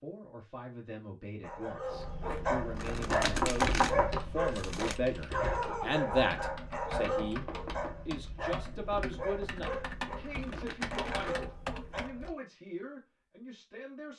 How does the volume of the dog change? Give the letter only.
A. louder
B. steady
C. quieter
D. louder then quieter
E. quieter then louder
C.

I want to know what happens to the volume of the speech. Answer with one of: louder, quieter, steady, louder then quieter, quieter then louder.
louder then quieter.